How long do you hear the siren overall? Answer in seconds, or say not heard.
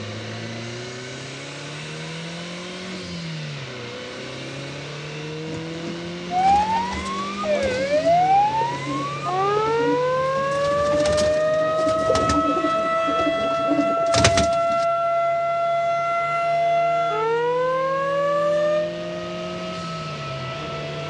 15 s.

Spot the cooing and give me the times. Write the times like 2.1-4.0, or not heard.
5.5-14.8.